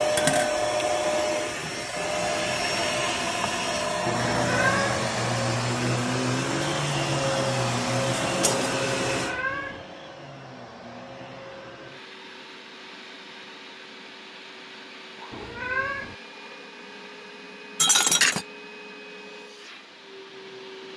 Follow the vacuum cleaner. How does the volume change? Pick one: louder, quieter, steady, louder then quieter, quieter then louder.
quieter.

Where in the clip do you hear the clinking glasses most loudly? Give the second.
18 s.